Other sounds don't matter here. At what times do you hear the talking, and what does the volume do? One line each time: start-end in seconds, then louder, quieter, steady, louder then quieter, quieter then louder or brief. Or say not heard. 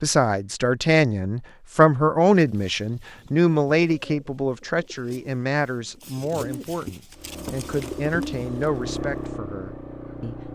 0.0-10.3 quieter.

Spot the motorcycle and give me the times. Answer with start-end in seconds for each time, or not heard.
7.1-10.5.